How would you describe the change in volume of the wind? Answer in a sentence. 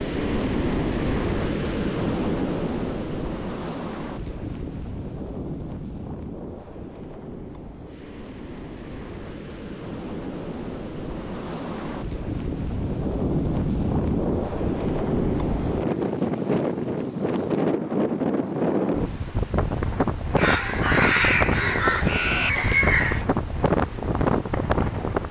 The volume of the wind goes down, then up.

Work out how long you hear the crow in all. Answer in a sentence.
The crow can be heard for 3 seconds in total.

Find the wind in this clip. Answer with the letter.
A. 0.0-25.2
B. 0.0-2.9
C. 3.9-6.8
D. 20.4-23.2
A.